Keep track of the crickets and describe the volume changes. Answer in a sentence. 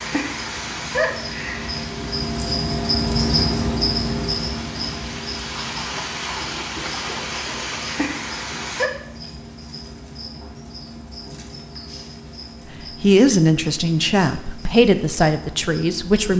The loudness of the crickets goes down.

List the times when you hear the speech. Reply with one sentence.
The speech can be heard from 13.0 to 16.3 s.